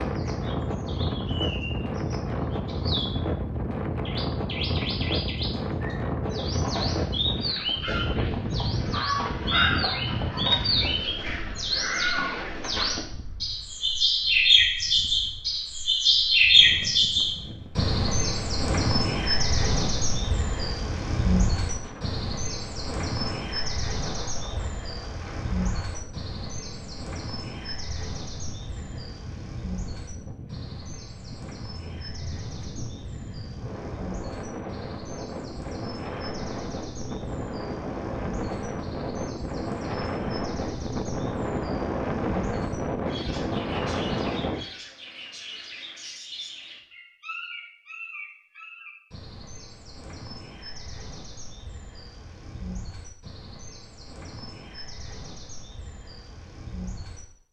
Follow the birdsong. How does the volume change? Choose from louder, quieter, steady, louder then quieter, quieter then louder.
louder then quieter.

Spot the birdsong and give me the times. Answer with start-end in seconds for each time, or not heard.
0.0-57.2.